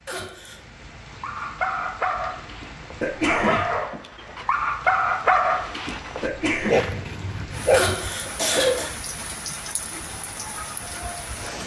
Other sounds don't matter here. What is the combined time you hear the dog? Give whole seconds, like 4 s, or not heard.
7 s.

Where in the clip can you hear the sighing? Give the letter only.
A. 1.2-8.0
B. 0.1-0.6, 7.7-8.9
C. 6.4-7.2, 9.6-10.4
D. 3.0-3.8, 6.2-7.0
B.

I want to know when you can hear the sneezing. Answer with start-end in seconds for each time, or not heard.
3.0-3.8, 6.2-7.0.